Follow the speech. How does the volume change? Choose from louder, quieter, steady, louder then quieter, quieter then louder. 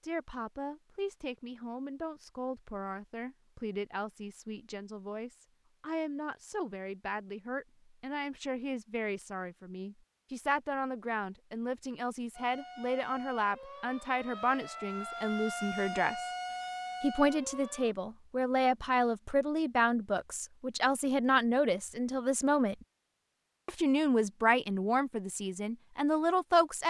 louder.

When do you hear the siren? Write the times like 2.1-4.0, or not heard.
12.3-17.9.